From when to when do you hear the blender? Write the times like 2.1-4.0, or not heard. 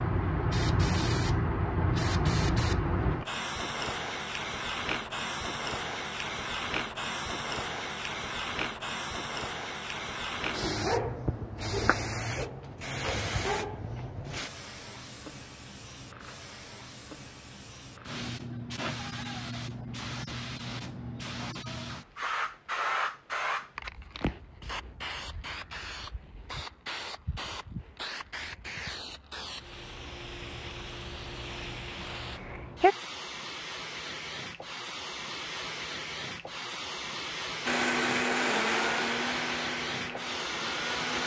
37.6-41.2.